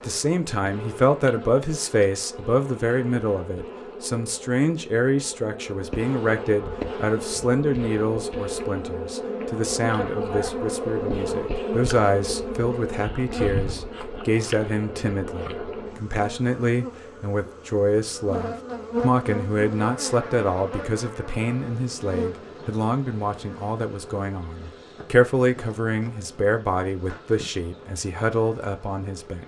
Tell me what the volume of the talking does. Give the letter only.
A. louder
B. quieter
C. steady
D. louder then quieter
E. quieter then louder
C.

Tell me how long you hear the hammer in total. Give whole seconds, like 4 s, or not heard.
not heard.